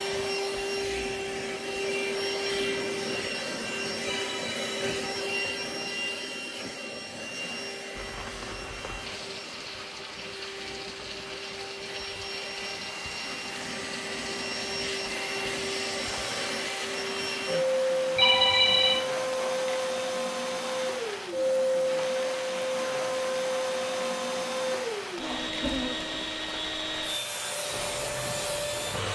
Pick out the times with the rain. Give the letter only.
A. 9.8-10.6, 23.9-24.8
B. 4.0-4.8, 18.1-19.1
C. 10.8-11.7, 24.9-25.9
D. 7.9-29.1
D.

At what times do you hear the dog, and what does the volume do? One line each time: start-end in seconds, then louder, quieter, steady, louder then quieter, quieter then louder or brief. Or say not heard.
not heard.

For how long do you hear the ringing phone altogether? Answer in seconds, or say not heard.
2 s.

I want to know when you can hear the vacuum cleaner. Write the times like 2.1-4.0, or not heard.
0.0-29.1.